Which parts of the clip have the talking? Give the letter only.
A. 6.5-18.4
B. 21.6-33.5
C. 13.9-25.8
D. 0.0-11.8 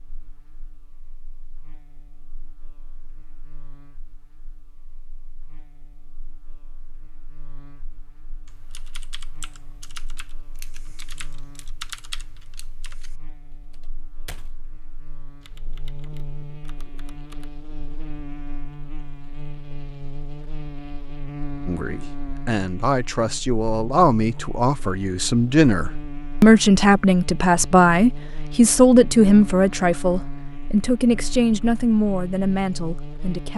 B.